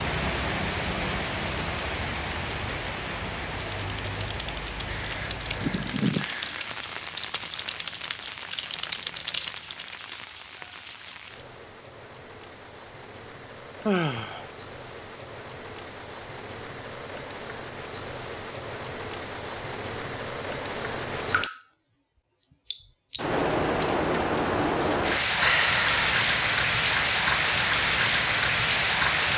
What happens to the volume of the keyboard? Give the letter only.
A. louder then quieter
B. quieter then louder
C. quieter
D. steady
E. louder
E.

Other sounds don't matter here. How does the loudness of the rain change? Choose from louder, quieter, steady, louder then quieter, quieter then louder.
quieter then louder.